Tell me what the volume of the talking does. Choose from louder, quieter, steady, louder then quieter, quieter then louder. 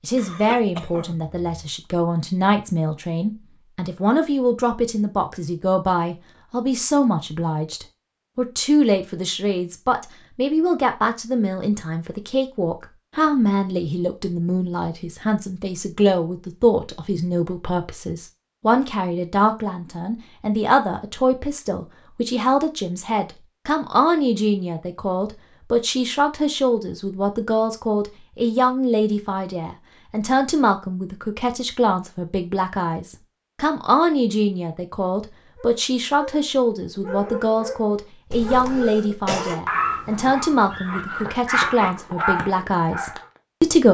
steady.